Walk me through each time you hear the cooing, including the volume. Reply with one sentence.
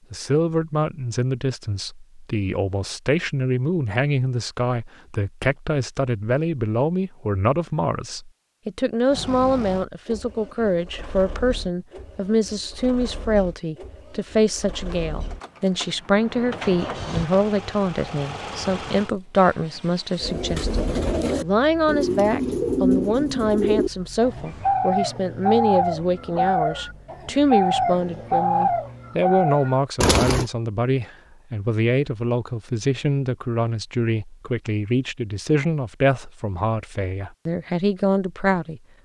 You can hear the cooing from 20.2 to 30.4 s, at a steady volume.